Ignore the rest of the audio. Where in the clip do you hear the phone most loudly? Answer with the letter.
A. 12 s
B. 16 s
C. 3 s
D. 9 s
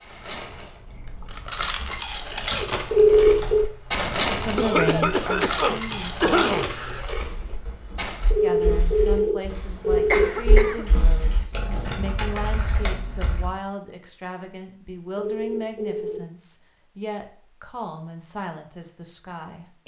C.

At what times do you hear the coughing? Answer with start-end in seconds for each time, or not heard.
4.5-6.7, 10.1-10.9.